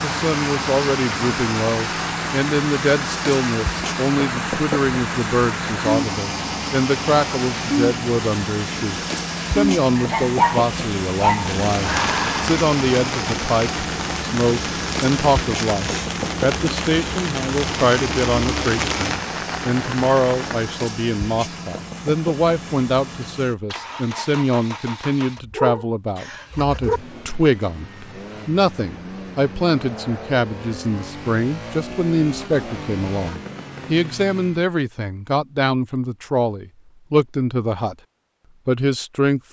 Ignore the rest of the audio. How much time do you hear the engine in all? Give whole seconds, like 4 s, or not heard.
35 s.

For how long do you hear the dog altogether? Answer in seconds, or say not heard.
4 s.